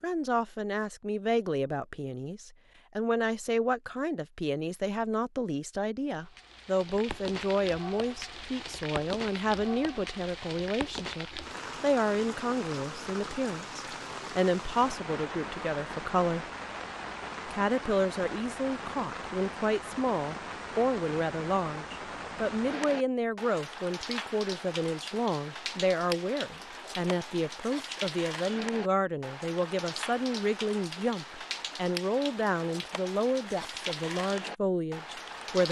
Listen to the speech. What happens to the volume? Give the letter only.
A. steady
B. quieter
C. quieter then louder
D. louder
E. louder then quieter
A.